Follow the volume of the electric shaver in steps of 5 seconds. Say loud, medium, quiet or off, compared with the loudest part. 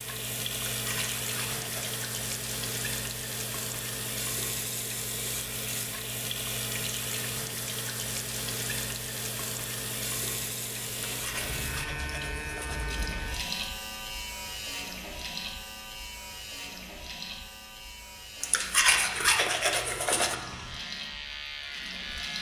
off, off, loud, medium, loud.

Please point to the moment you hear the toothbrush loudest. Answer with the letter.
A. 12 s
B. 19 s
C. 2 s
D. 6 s
B.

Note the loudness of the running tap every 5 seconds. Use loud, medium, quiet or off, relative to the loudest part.
loud, loud, loud, medium, medium.